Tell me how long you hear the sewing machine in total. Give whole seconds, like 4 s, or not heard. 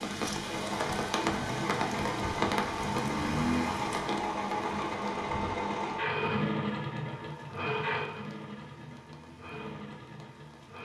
11 s.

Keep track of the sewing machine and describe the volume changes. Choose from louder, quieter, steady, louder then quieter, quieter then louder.
quieter.